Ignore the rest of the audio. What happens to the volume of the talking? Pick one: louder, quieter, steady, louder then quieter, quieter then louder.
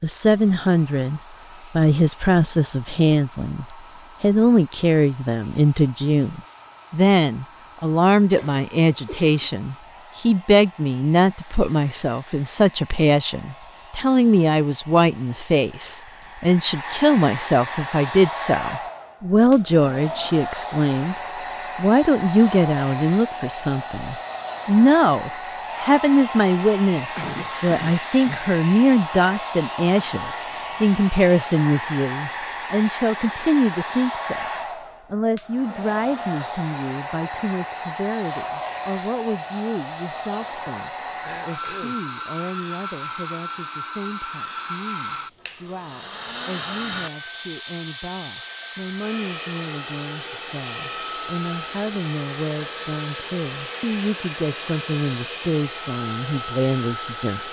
quieter.